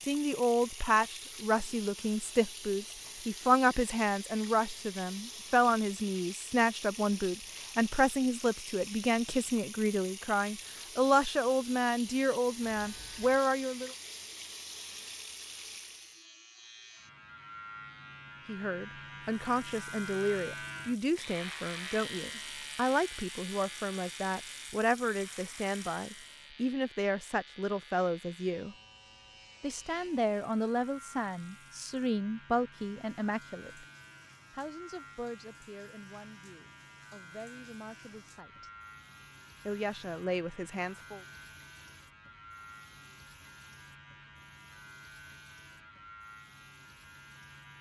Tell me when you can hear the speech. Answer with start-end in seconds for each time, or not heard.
0.1-13.9, 18.4-28.8, 29.6-33.9, 34.5-38.7, 39.6-41.2.